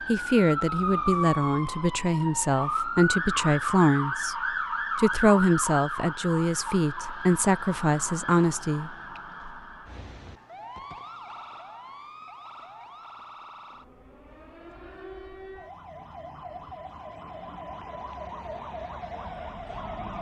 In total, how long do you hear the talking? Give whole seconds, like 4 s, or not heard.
8 s.